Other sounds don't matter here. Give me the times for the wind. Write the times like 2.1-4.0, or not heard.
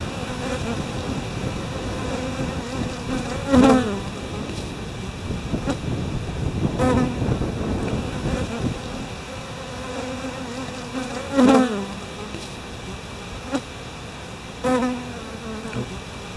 0.0-9.1.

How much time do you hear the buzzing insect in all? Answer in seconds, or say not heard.
16 s.